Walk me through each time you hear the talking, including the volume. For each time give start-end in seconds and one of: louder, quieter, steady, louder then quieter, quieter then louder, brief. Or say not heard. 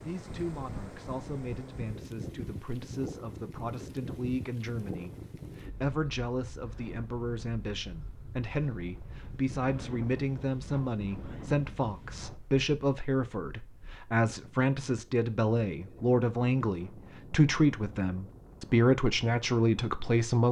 0.0-20.4 louder.